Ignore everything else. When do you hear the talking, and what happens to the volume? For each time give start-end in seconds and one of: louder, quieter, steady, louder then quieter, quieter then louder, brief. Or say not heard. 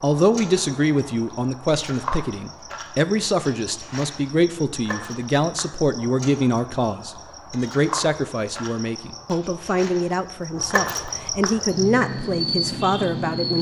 0.0-13.5 steady.